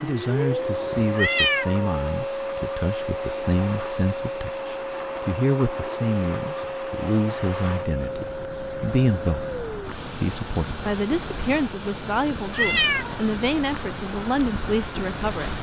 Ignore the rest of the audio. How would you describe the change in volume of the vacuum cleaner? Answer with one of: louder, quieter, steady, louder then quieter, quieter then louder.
quieter.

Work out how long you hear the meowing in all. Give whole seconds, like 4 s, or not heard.
2 s.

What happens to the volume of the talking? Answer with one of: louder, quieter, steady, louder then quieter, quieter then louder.
steady.